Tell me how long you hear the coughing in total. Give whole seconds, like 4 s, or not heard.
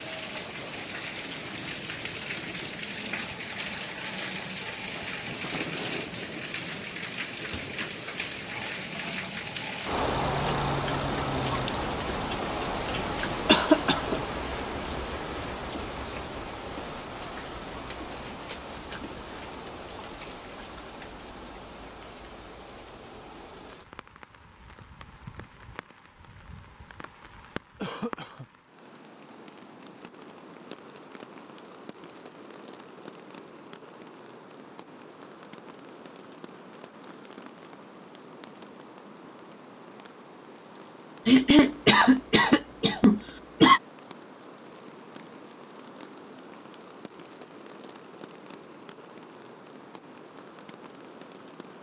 4 s.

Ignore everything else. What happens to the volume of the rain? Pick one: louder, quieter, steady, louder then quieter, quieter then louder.
quieter.